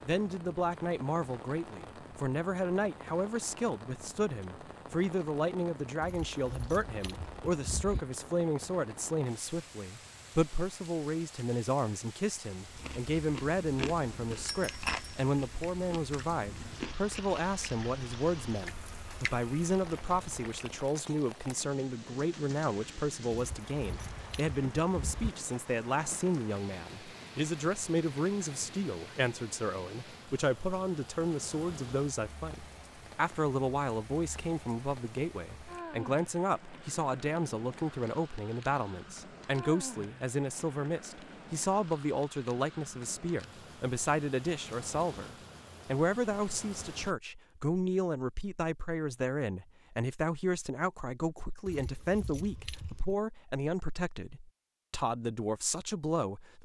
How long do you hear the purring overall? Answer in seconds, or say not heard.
not heard.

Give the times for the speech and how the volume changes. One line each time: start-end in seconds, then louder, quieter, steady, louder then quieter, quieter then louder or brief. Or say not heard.
0.0-56.6 steady.